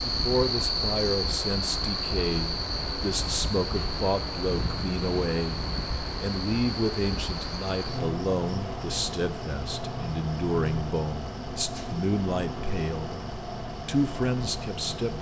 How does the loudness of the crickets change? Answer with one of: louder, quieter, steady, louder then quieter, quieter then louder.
quieter.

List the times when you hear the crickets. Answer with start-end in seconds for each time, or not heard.
0.0-15.1.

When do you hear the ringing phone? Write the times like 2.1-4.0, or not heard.
not heard.